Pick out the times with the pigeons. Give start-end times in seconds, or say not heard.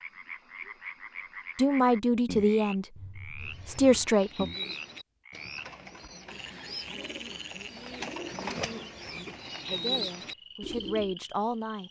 3.4-11.2.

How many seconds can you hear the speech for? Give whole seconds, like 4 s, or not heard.
5 s.